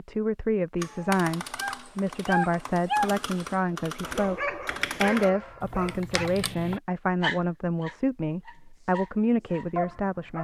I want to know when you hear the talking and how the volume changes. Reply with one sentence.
You can hear the talking from 0.0 to 10.3 s, at a steady volume.